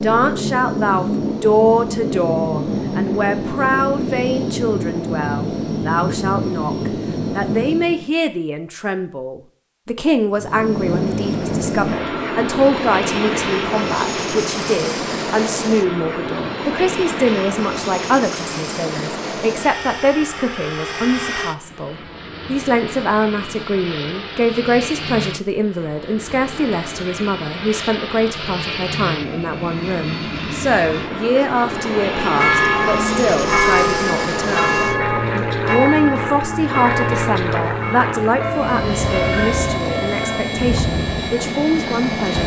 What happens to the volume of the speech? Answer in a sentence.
The volume of the speech stays about the same.